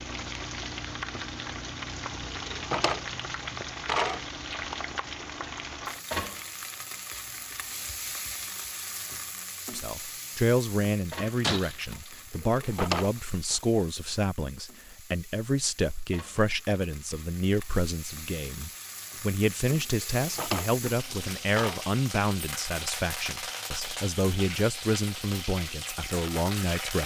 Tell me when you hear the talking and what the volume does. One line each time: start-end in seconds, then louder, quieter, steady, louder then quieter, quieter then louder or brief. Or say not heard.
9.7-27.0 steady.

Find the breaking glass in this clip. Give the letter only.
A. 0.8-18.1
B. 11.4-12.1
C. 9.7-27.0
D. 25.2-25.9
B.